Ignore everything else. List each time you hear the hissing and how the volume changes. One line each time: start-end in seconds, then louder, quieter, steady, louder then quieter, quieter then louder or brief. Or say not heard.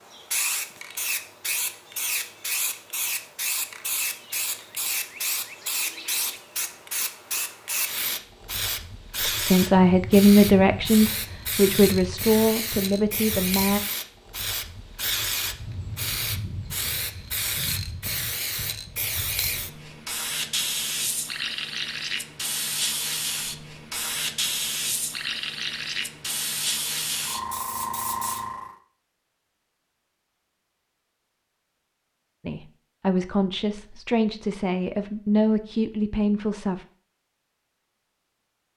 0.0-28.8 steady.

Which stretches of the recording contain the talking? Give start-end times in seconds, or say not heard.
9.2-13.8, 32.5-36.9.